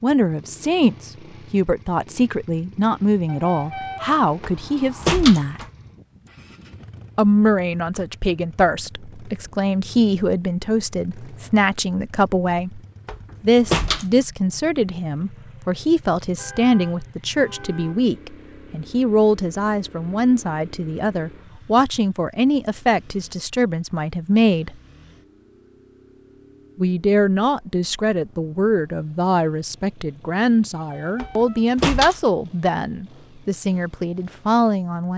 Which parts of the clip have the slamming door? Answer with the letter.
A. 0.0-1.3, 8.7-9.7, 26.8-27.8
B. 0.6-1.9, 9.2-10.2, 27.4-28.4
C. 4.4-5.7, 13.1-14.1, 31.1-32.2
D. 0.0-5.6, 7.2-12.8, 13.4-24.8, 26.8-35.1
C.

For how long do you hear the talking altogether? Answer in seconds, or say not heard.
31 s.